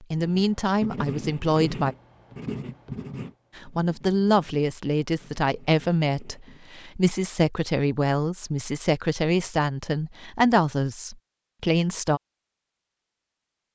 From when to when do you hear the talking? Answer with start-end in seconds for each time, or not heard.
0.1-1.9, 3.5-12.2.